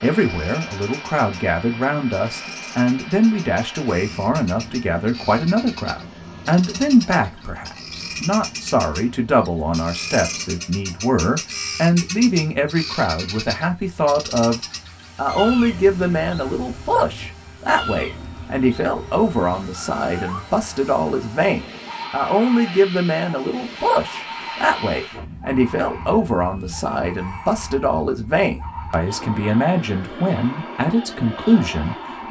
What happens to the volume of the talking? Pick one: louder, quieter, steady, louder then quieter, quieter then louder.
steady.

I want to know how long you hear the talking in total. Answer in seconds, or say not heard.
32 s.